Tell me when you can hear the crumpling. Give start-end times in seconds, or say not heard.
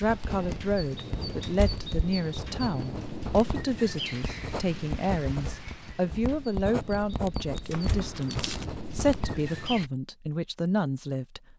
7.7-8.7.